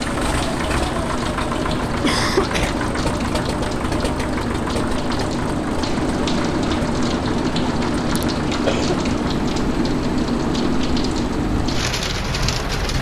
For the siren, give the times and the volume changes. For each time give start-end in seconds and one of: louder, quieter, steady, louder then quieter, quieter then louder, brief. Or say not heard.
not heard.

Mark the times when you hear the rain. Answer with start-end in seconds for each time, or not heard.
0.0-12.9.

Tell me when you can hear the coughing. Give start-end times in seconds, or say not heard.
1.9-2.8, 8.2-9.2.